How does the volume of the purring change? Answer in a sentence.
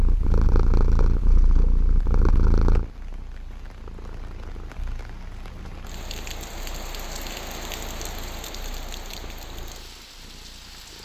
The loudness of the purring goes down.